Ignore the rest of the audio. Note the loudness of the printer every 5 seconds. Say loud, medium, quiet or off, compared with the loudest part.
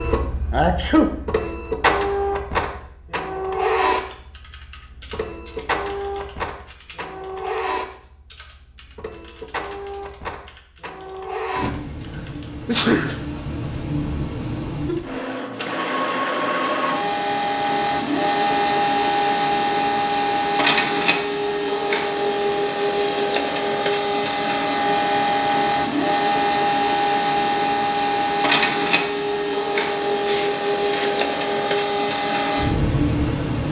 medium, medium, medium, loud, loud, loud, loud.